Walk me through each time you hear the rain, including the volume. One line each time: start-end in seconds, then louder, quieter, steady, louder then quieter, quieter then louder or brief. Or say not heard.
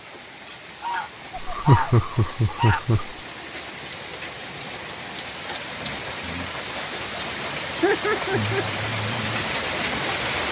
0.0-10.4 louder.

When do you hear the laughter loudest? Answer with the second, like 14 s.
2 s.